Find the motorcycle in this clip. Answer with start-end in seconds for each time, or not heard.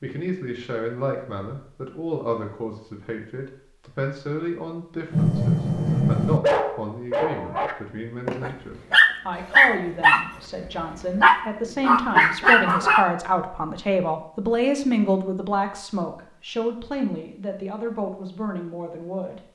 not heard.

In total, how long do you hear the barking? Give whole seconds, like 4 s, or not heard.
8 s.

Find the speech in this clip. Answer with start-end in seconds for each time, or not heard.
0.0-19.4.